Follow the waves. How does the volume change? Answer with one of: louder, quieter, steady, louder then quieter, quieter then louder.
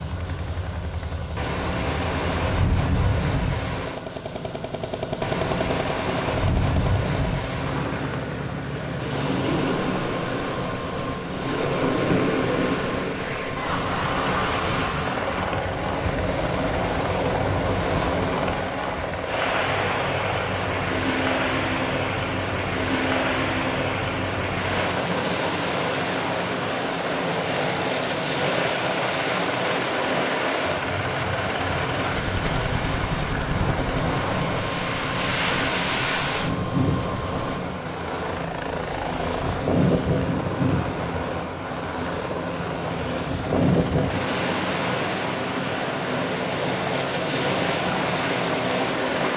steady.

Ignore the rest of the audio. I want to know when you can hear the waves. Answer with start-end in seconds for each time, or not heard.
0.0-49.3.